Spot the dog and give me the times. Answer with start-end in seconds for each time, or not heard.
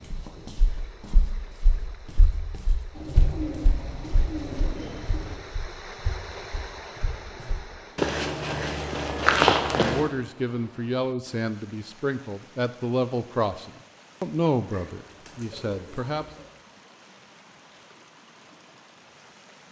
not heard.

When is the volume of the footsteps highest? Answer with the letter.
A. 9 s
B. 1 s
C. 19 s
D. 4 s
A.